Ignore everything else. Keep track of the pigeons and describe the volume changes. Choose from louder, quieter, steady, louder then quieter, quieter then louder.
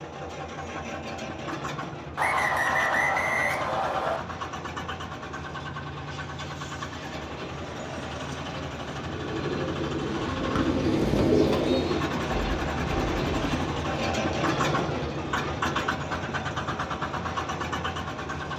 louder then quieter.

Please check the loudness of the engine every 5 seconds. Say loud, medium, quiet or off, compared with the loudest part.
medium, medium, loud, loud.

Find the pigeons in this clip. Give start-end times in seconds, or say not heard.
9.0-15.9.